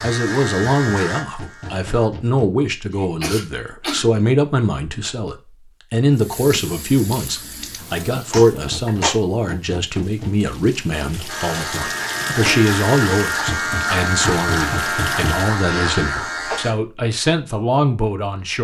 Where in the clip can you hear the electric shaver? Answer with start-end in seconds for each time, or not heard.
0.0-2.1, 11.2-16.8.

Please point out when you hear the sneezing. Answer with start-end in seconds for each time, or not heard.
2.9-4.0, 8.3-9.2, 15.7-16.6.